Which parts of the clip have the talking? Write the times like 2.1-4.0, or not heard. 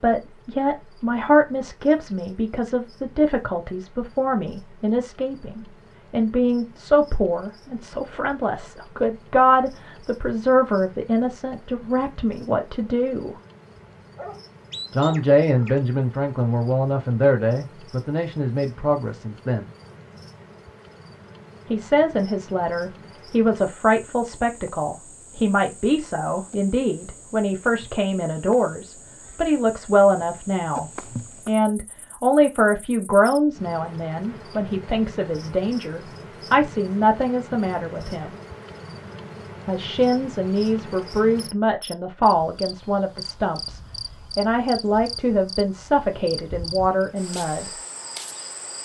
0.0-13.3, 14.9-19.6, 21.7-38.4, 39.6-47.7.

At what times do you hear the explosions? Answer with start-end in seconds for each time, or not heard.
not heard.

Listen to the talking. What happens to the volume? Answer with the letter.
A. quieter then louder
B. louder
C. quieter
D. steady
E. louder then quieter
D.